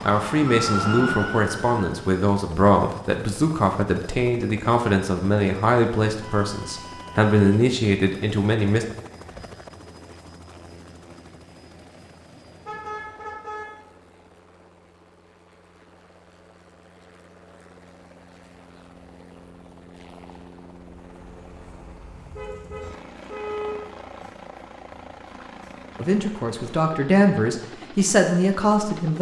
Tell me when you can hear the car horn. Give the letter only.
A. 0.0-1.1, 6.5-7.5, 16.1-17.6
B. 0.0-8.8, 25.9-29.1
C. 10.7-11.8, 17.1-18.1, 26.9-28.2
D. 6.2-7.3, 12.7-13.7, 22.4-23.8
D.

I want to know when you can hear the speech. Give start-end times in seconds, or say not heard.
0.0-8.8, 25.9-29.1.